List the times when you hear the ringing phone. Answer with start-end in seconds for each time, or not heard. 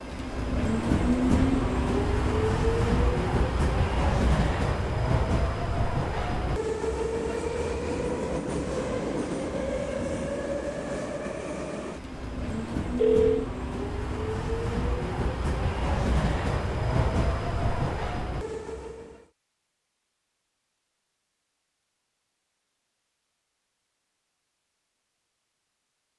12.1-13.4.